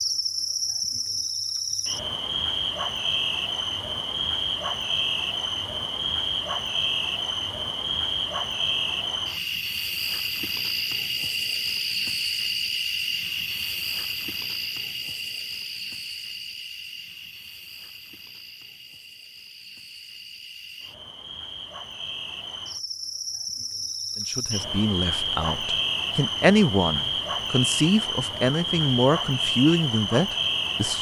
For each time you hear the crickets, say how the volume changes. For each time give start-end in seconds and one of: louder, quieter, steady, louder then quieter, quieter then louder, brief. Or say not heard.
0.0-30.9 quieter then louder.